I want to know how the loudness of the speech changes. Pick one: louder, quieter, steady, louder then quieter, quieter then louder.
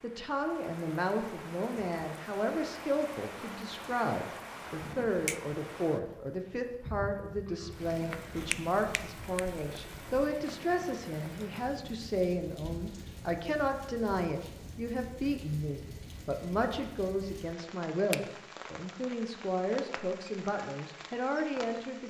steady.